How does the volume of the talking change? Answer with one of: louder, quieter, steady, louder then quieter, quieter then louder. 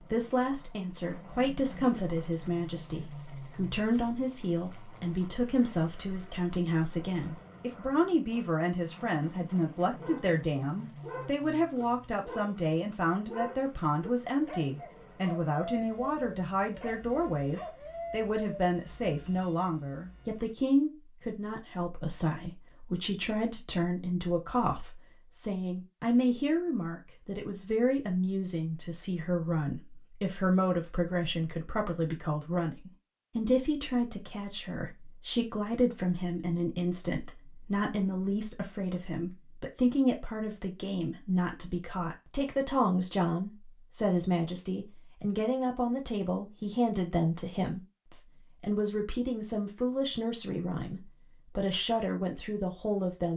steady.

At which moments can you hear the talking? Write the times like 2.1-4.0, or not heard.
0.1-53.3.